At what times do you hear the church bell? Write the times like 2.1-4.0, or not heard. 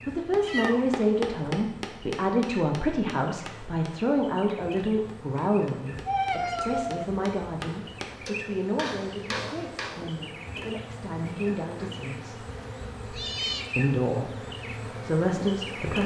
not heard.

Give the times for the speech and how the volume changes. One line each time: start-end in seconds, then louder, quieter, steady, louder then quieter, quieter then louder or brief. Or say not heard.
0.1-12.4 quieter
13.8-16.0 brief.